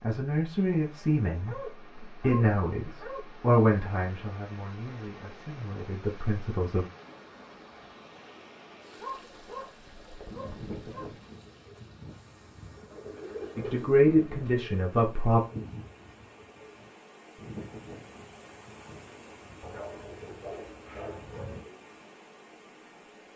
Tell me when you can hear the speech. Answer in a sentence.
The speech can be heard from 0.0 to 6.8 s and from 13.6 to 15.4 s.